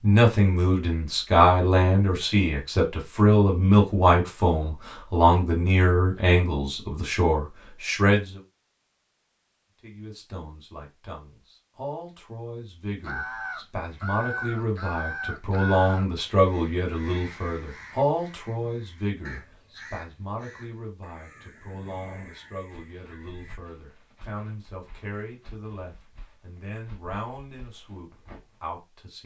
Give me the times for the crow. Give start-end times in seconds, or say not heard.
13.0-23.6.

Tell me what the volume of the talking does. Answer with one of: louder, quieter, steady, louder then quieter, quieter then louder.
quieter.